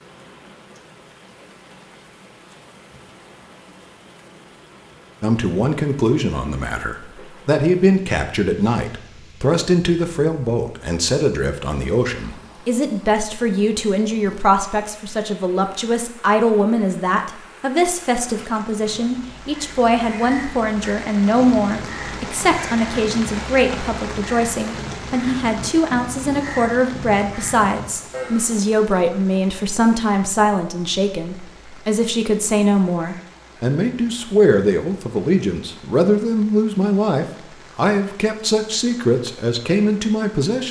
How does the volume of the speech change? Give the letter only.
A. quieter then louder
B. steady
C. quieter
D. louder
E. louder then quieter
B.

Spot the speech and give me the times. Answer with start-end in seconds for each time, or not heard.
5.2-40.6.